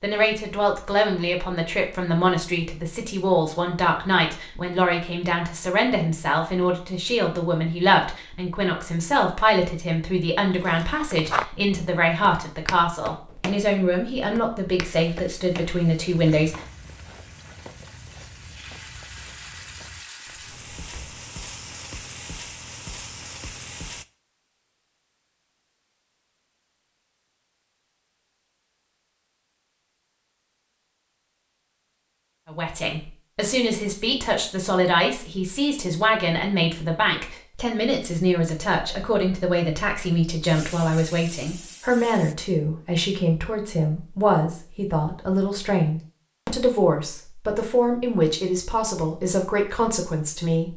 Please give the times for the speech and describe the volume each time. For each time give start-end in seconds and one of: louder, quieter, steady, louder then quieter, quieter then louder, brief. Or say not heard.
0.0-16.6 steady
32.5-50.7 steady.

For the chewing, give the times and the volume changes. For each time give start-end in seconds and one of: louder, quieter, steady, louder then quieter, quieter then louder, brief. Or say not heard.
not heard.